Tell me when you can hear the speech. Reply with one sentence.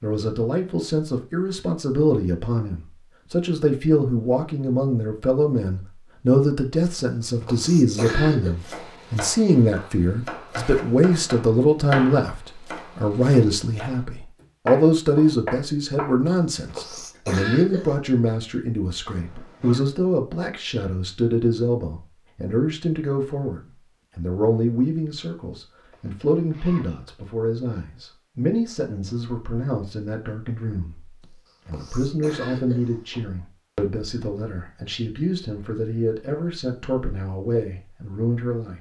You can hear the speech from 0.0 to 38.7 s.